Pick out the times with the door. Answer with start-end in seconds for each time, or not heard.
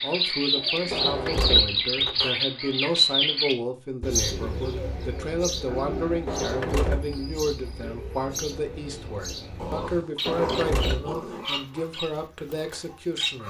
0.9-2.4, 6.2-7.2, 10.2-11.2.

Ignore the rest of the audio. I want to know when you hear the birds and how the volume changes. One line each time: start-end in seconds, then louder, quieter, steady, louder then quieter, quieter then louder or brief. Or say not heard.
0.0-13.4 quieter.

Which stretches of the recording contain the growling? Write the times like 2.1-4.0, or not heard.
0.5-0.9, 5.7-6.3, 9.6-11.4.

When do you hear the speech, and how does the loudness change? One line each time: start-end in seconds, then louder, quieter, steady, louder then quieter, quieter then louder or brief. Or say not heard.
0.0-13.4 steady.